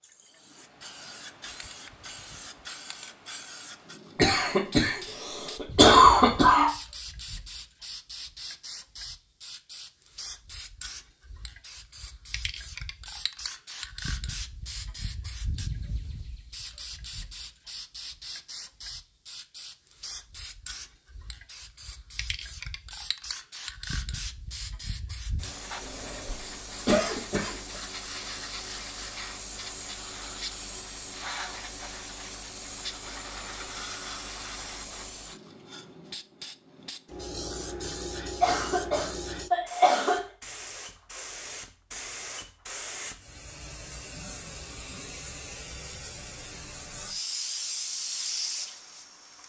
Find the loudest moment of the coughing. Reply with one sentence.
The loudest moment of the coughing is at 6 seconds.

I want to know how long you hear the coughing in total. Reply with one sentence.
You can hear the coughing for 6 seconds altogether.